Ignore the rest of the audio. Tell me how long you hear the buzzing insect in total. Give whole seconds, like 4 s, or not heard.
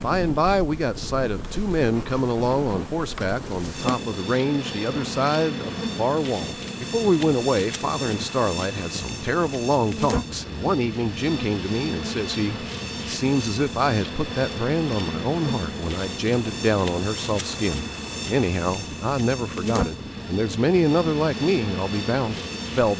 23 s.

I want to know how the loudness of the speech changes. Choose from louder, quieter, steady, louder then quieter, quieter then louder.
steady.